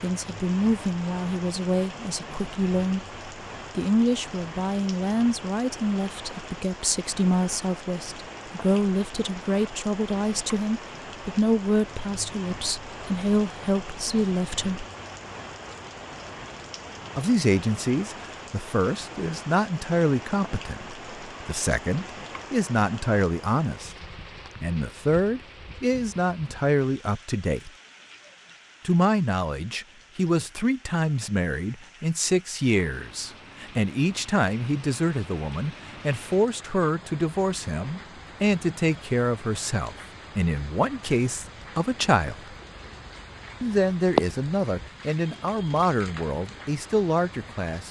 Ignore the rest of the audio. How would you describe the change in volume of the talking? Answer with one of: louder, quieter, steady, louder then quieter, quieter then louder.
steady.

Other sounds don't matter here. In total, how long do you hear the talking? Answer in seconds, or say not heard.
43 s.